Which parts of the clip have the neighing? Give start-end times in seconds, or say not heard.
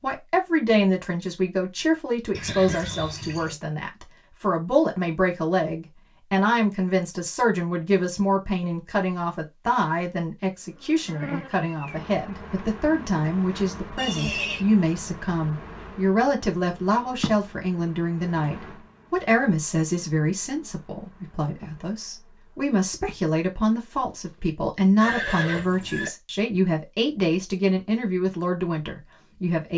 2.3-3.5, 13.9-14.7, 25.0-26.1.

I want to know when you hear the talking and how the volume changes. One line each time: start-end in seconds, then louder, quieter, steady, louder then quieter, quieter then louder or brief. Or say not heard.
0.0-29.7 steady.